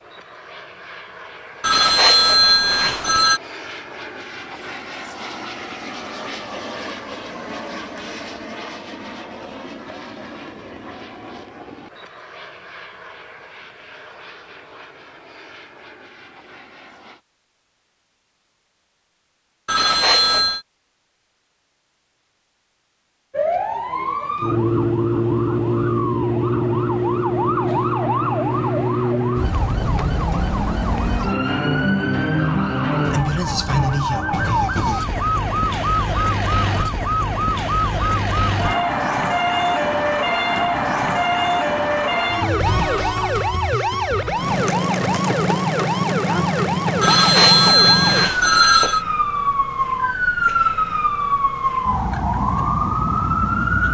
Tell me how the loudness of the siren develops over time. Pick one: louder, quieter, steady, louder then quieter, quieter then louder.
steady.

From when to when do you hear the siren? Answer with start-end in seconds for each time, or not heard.
23.3-53.8.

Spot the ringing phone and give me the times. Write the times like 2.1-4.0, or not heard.
1.6-3.4, 19.6-20.6, 47.0-49.0.